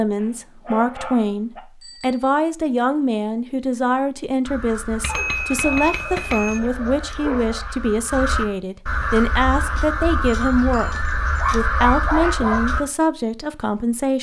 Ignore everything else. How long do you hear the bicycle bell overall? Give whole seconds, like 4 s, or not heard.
3 s.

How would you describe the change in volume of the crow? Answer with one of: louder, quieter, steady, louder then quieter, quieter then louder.
louder.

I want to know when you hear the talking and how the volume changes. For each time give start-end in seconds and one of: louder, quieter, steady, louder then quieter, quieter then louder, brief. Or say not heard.
0.0-14.1 steady.